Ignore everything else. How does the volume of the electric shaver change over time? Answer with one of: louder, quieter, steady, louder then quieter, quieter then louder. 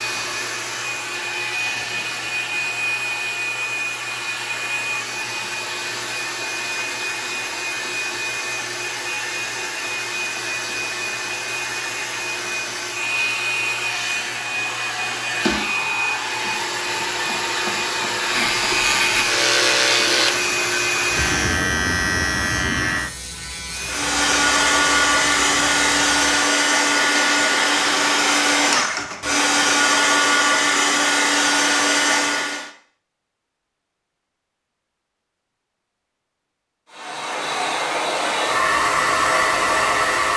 quieter.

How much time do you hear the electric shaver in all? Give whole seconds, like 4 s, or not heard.
8 s.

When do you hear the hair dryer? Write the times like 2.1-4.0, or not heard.
0.0-21.6, 23.7-32.7, 36.9-40.3.